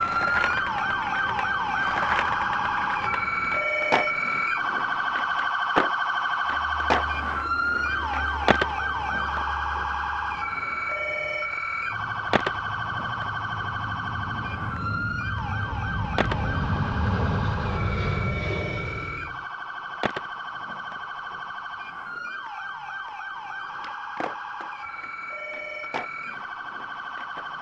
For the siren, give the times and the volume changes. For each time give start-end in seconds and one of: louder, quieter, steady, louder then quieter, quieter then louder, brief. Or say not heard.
0.0-27.5 quieter.